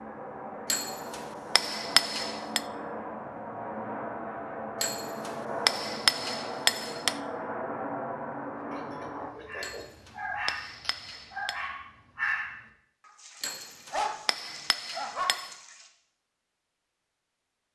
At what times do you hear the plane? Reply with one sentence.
The plane can be heard from 0.0 to 9.3 s.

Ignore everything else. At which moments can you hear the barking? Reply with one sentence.
The barking can be heard from 8.7 to 15.9 s.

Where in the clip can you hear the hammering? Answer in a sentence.
You can hear the hammering from 0.7 to 2.6 s, from 4.8 to 7.2 s, from 9.6 to 11.6 s and from 13.4 to 15.6 s.